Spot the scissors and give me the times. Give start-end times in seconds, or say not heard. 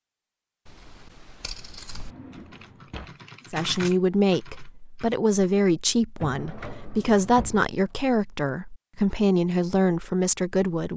0.7-2.1.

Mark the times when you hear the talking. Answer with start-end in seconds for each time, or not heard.
3.5-10.9.